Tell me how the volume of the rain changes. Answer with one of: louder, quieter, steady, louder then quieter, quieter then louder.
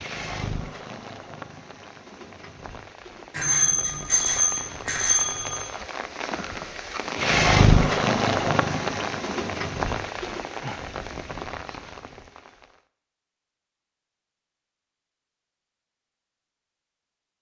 louder then quieter.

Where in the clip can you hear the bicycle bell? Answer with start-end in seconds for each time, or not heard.
3.4-5.6.